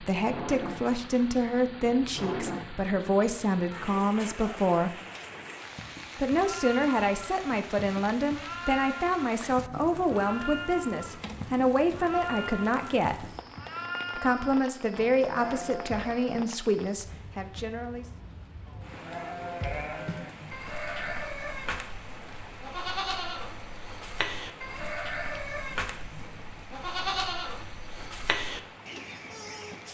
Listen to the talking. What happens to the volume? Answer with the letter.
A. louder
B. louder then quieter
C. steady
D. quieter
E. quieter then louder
C.